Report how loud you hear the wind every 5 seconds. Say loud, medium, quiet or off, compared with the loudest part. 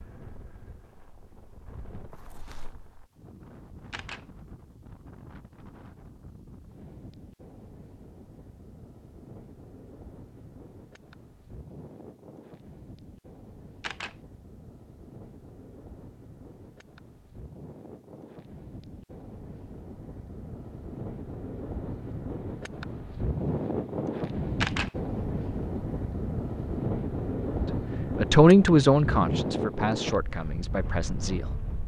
quiet, quiet, quiet, quiet, loud, loud, medium.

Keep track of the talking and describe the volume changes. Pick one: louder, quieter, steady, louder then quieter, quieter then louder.
quieter.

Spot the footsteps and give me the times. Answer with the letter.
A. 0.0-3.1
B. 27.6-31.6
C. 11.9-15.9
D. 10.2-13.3
A.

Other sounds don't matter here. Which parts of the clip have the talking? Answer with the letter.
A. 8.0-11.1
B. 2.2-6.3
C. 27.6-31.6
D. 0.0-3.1
C.